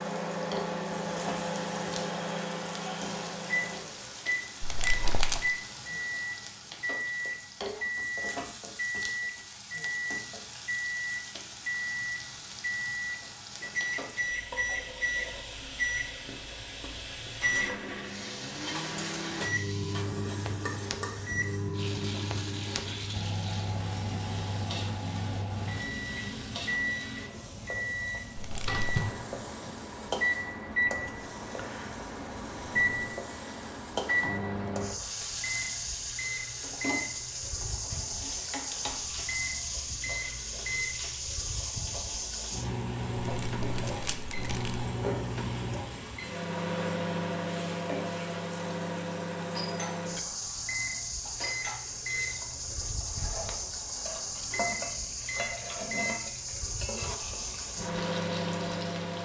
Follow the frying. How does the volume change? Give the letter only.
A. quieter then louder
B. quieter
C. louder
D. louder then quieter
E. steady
E.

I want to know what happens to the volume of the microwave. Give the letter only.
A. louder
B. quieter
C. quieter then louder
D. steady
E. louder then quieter
D.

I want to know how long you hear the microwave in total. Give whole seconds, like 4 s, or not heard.
59 s.